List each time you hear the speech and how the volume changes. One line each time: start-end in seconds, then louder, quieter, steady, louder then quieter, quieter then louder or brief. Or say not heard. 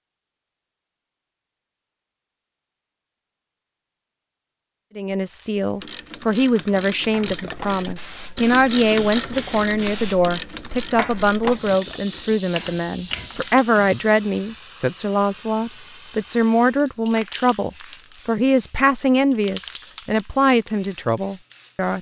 5.0-21.9 steady.